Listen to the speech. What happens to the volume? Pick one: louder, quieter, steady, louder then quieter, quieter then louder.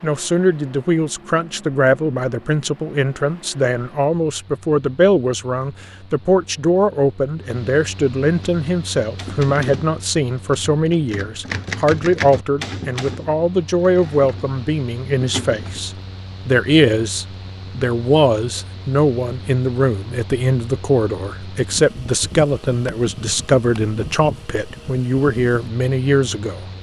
steady.